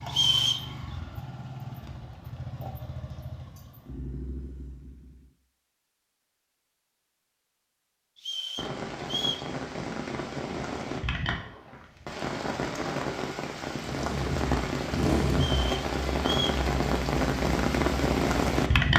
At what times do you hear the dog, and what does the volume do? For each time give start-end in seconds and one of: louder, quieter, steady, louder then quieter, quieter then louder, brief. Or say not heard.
not heard.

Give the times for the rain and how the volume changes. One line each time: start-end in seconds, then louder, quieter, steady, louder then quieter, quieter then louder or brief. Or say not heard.
8.6-18.9 louder.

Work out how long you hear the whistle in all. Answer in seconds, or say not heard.
3 s.